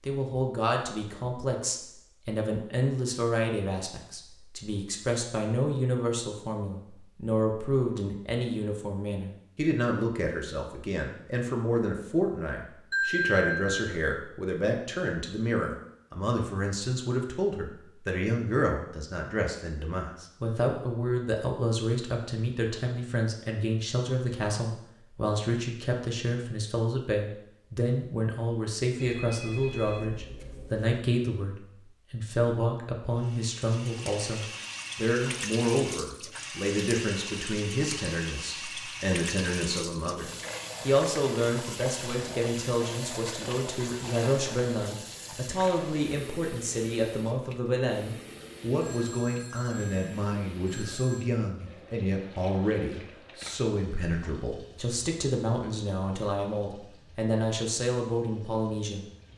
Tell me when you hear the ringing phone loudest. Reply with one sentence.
The loudest moment of the ringing phone is at 13 seconds.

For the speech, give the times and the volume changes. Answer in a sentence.
You can hear the speech from 0.0 to 59.0 s, at a steady volume.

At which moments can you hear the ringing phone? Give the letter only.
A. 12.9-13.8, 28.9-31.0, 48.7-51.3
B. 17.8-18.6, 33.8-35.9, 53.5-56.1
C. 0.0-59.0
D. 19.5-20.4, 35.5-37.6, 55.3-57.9
A.